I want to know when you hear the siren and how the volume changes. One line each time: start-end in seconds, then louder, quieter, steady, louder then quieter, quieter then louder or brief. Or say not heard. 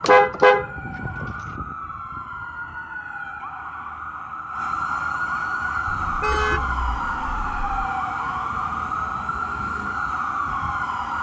0.0-11.1 louder.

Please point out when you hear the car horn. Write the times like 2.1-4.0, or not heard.
0.0-1.6, 5.8-7.7.